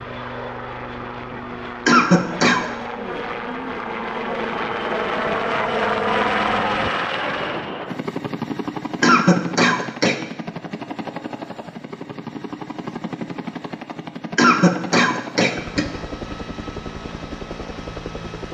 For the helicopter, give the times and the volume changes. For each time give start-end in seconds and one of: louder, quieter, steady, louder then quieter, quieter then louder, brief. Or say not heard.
0.0-18.4 louder then quieter.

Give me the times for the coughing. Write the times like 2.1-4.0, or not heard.
1.9-2.6, 9.0-10.2, 14.3-15.8.